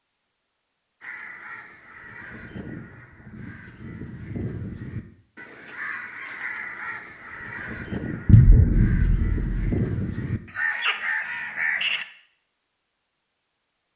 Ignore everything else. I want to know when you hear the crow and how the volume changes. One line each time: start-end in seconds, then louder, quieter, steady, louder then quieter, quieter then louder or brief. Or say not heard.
1.0-12.1 louder.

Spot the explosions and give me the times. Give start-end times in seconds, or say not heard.
8.2-9.6.